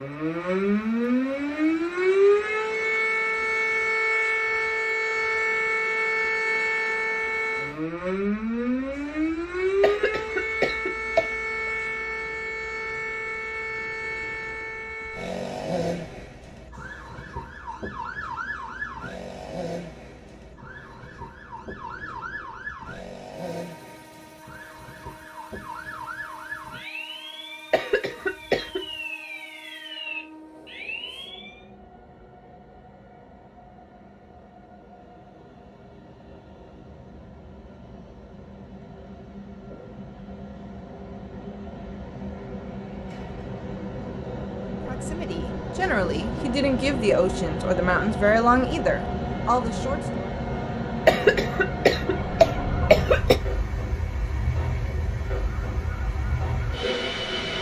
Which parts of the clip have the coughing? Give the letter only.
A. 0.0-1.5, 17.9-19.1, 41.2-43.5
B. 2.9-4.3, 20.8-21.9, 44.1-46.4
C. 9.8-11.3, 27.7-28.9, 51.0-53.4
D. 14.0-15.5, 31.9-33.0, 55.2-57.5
C.